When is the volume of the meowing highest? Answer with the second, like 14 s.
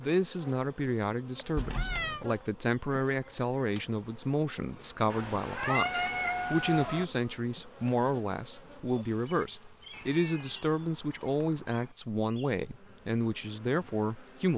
6 s.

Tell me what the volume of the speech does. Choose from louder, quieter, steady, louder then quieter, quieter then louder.
steady.